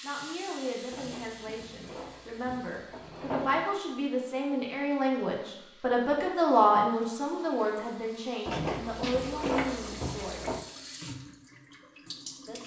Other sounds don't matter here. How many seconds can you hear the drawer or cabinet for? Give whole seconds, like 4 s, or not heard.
5 s.